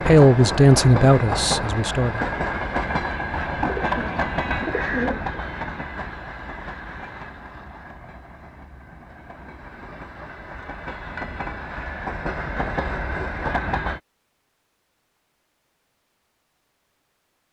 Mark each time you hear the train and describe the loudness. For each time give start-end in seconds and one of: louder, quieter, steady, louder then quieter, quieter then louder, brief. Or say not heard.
0.0-14.0 quieter then louder.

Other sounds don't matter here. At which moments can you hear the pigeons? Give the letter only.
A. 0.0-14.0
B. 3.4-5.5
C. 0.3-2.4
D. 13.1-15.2
B.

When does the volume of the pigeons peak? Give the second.
5 s.